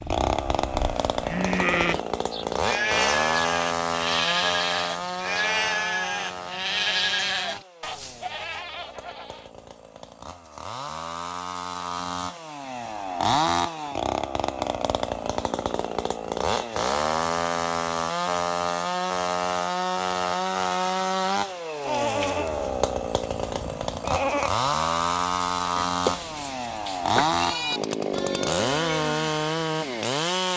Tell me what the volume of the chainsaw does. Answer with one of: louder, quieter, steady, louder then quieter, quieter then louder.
quieter then louder.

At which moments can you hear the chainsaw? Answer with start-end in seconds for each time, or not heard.
0.0-30.5.